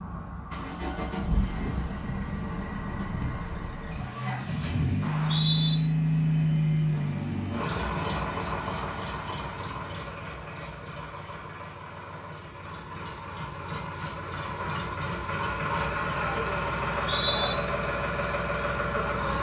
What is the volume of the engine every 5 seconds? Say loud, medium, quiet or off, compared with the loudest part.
medium, loud, medium, loud.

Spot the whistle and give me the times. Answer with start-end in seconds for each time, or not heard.
5.0-5.8, 16.9-17.6.